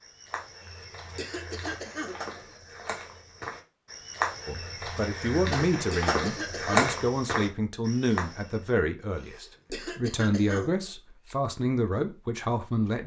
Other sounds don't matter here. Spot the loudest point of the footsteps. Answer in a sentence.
The loudest moment of the footsteps is at 7 seconds.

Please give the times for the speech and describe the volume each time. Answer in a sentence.
The speech can be heard from 4.5 to 13.0 s, at a steady volume.